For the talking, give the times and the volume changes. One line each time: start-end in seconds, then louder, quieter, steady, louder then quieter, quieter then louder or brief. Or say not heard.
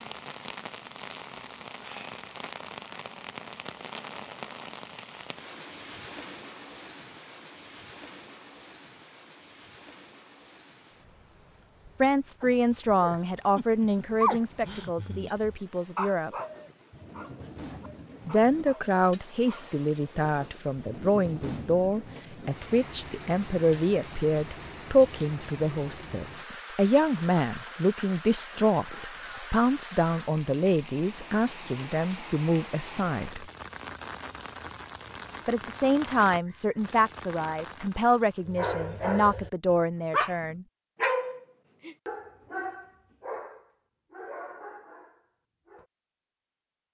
12.0-16.3 quieter
18.2-33.5 steady
35.5-40.6 steady.